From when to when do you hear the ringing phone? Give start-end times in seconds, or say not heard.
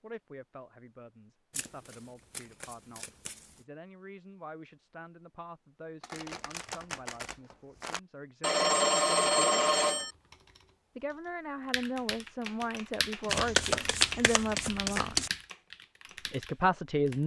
8.4-10.1.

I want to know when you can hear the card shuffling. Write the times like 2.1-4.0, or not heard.
1.5-3.6, 6.0-8.0, 13.2-15.3.